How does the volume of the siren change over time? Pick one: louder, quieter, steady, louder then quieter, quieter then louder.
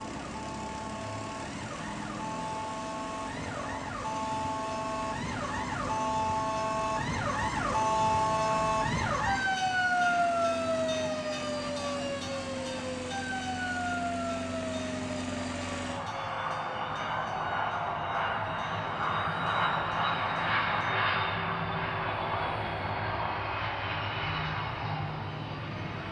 louder then quieter.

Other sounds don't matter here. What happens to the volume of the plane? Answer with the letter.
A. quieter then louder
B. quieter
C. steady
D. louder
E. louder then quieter
D.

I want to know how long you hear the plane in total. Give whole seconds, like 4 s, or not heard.
26 s.